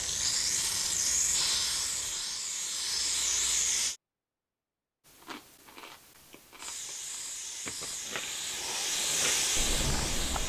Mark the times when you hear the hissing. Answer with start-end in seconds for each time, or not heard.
0.0-4.0, 6.5-10.4.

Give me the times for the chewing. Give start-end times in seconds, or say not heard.
5.0-10.4.